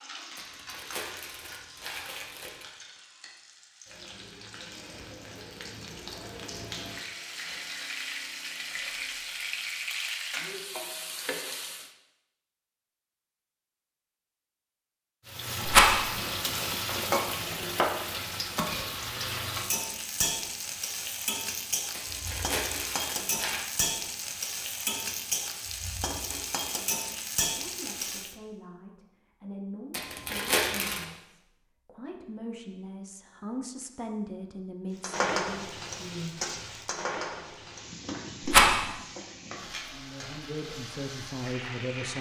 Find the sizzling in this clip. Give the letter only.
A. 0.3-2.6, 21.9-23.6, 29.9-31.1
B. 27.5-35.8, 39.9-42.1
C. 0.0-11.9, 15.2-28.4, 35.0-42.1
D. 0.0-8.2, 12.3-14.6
C.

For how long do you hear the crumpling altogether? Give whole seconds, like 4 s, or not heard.
5 s.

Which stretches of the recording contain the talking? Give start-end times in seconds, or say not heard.
27.5-35.8, 39.9-42.1.